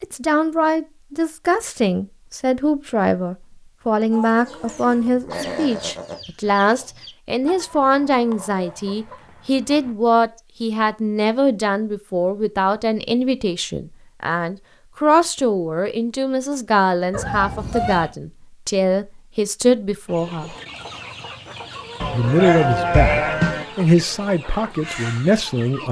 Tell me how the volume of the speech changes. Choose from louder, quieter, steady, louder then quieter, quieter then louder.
steady.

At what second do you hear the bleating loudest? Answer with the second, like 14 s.
23 s.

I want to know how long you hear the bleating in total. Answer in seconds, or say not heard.
3 s.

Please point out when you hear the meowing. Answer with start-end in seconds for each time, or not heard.
17.1-18.1.